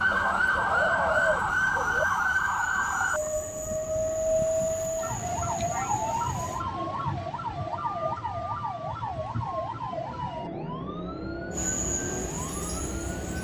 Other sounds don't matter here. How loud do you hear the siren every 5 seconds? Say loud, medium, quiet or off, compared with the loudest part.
loud, medium, medium.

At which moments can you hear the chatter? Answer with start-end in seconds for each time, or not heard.
not heard.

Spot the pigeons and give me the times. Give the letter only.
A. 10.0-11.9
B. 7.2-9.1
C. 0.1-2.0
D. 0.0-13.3
C.